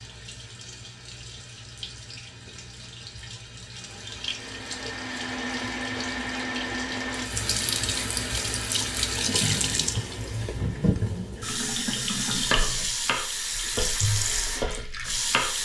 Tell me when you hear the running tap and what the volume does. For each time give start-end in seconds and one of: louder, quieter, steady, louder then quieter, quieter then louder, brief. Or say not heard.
0.0-15.5 louder.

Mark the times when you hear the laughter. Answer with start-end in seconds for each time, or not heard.
not heard.